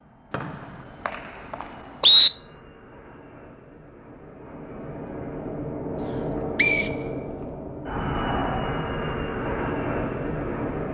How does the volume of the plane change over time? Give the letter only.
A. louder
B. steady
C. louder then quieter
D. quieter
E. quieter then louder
A.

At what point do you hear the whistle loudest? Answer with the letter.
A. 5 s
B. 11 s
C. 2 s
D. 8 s
C.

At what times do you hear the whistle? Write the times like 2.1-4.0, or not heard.
0.3-2.3, 6.5-7.0.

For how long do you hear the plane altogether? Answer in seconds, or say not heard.
11 s.